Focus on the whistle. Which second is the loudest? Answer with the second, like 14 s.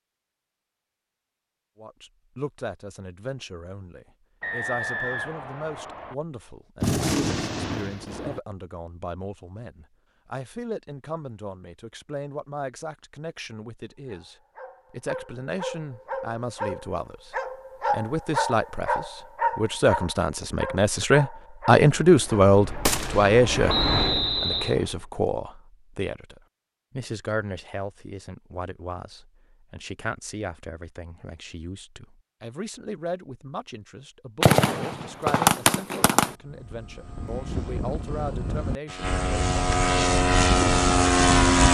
24 s.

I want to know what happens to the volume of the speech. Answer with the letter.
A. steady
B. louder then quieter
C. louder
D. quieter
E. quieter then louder
B.